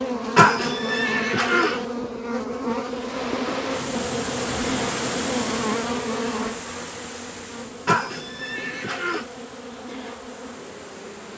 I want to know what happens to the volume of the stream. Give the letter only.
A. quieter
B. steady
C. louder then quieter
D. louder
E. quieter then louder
A.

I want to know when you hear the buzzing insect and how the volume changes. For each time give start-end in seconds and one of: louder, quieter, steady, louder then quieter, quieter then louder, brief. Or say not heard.
0.0-11.3 quieter.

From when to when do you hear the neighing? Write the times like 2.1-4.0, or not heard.
0.3-1.9, 7.8-9.2.